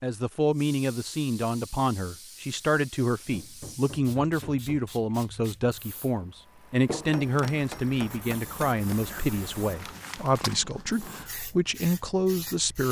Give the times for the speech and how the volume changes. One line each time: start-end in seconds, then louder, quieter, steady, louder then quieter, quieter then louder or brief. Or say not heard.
0.0-12.8 steady.